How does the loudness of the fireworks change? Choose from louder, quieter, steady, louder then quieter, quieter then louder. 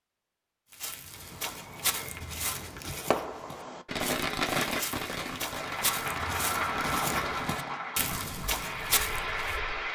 louder then quieter.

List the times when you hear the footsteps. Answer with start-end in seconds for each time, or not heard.
0.7-9.6.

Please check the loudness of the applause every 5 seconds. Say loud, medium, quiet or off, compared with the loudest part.
off, loud.